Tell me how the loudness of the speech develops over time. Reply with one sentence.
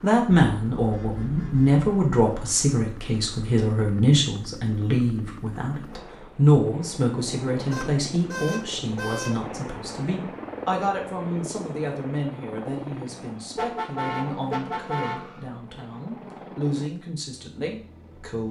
The loudness of the speech goes down.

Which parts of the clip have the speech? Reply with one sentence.
The speech can be heard from 0.0 to 18.4 s.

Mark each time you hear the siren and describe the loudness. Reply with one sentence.
You can't hear the siren here.